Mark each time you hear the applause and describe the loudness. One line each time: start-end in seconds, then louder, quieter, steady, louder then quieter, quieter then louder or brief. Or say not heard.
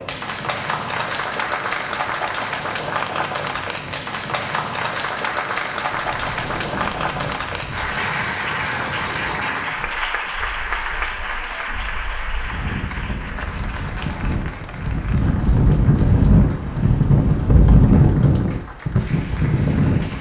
0.0-20.1 quieter.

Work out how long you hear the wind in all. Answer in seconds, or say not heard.
14 s.